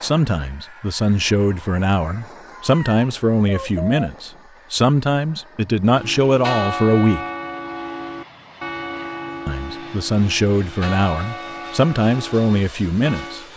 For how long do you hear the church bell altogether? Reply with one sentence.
You can hear the church bell for 8 seconds altogether.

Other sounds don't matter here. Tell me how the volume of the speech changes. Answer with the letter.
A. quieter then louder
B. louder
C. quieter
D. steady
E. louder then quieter
D.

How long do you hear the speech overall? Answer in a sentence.
The speech can be heard for 11 seconds in total.